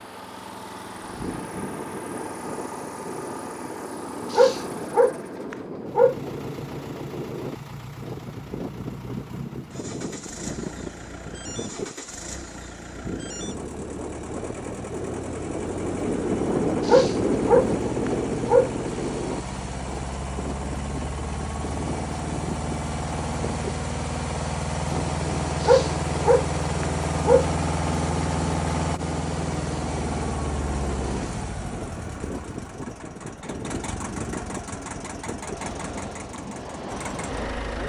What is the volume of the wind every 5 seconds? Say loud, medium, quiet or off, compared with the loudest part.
medium, medium, medium, loud, medium, medium, medium, medium.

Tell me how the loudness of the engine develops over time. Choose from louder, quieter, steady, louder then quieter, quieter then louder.
louder then quieter.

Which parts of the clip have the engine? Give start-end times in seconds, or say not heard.
0.0-37.8.